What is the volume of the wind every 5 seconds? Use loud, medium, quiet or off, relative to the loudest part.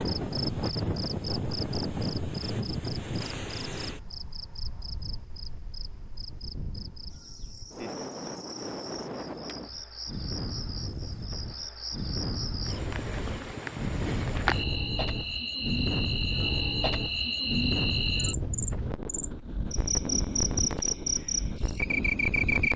loud, medium, loud, loud, loud.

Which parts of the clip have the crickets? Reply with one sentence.
You can hear the crickets from 0.0 to 22.7 s.